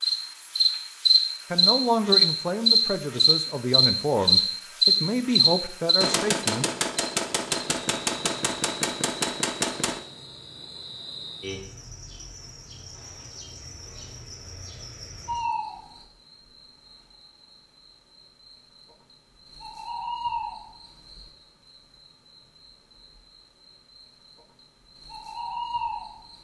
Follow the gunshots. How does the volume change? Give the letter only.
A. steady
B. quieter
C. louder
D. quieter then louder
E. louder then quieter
A.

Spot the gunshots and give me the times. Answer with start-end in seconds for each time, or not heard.
6.0-10.0.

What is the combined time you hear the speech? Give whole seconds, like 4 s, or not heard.
5 s.